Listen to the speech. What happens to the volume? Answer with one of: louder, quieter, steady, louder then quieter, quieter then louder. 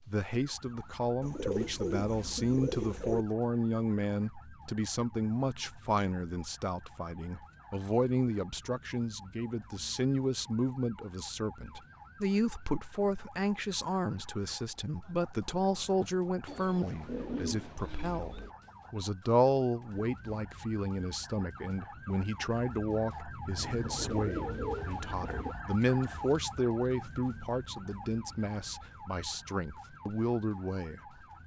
steady.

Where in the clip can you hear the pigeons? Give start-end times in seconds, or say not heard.
1.2-3.2, 16.4-18.6, 23.6-25.6.